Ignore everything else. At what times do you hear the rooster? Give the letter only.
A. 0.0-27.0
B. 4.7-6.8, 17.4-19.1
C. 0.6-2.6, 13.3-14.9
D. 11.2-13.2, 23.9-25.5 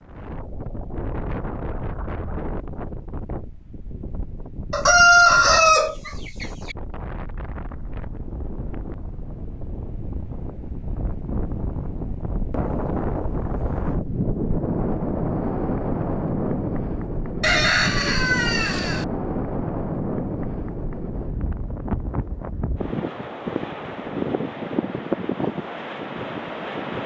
B.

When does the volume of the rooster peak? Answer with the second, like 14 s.
5 s.